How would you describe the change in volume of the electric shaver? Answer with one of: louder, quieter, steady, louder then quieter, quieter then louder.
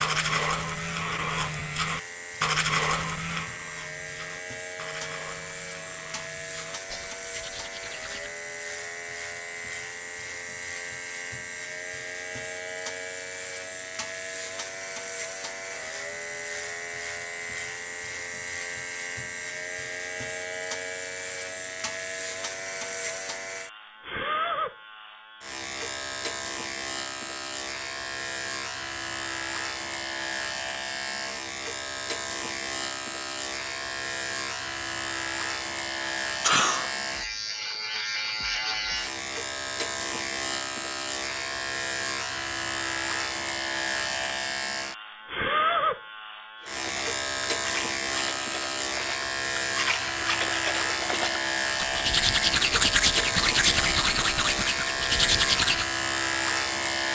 louder.